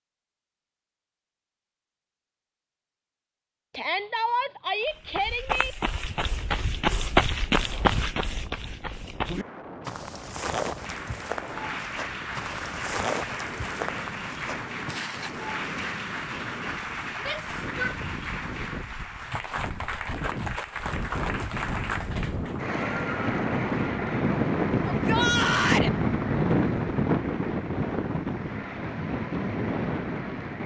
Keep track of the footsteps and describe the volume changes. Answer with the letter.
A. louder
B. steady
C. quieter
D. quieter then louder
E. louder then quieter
C.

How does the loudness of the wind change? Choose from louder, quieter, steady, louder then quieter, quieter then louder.
louder.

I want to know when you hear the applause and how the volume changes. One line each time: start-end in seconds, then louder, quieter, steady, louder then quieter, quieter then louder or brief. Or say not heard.
10.8-30.6 quieter.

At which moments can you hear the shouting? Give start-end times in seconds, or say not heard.
3.8-5.8, 17.2-17.9, 24.9-25.9.